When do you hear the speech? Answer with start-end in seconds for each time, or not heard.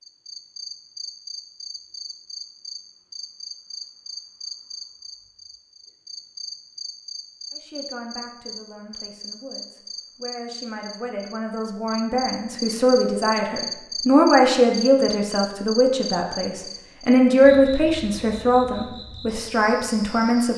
7.5-20.5.